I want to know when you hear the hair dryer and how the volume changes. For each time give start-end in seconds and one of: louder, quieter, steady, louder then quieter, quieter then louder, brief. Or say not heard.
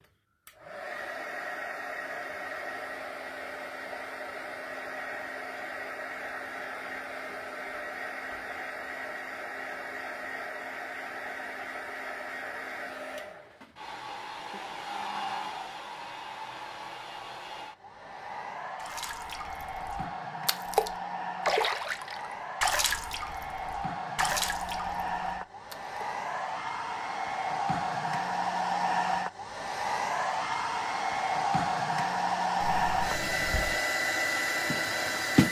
0.0-35.4 louder.